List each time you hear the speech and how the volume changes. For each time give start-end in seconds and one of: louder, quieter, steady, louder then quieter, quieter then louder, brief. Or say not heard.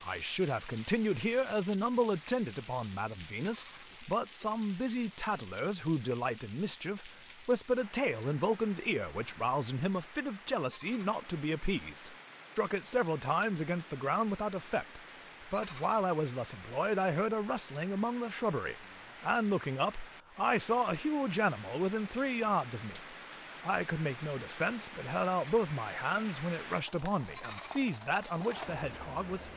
0.0-29.5 steady.